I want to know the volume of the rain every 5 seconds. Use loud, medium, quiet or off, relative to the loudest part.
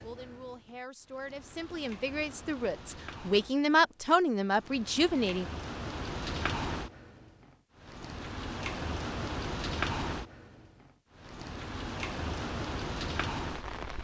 quiet, loud, loud.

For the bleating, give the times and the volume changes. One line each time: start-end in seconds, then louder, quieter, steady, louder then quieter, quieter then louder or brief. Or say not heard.
not heard.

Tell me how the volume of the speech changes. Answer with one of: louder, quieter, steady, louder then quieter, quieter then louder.
louder.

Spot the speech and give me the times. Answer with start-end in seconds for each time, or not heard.
0.0-5.5.